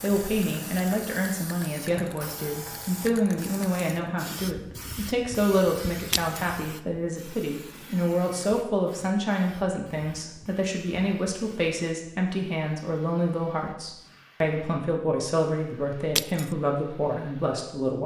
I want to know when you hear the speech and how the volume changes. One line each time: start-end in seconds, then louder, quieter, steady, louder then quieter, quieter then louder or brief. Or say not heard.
0.0-18.0 steady.